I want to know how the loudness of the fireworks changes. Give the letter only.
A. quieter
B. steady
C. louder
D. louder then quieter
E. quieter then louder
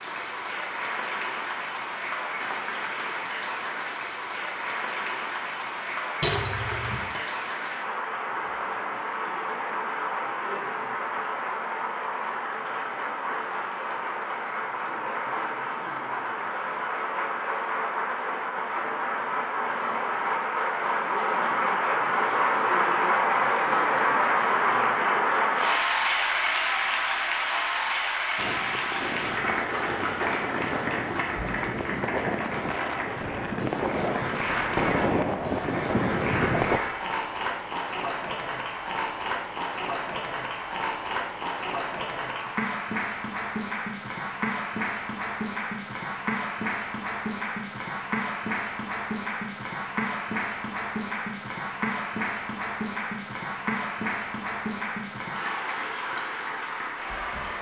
C.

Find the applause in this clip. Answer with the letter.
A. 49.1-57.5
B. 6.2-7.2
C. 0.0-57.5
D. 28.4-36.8
C.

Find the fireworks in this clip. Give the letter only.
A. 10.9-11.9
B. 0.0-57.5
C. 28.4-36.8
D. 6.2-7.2
C.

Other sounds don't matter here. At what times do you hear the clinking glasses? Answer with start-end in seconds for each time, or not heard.
6.2-7.2.